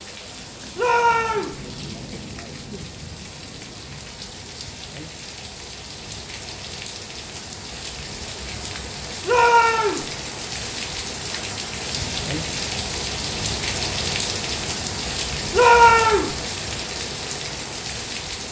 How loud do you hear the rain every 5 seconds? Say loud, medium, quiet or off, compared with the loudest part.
medium, medium, loud, loud.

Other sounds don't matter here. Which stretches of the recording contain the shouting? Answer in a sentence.
The shouting can be heard from 0.8 to 1.6 s, from 9.2 to 10.1 s and from 15.5 to 16.4 s.